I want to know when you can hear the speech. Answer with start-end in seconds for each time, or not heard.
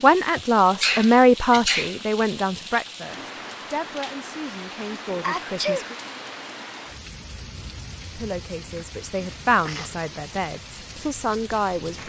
0.0-6.0, 8.2-12.0.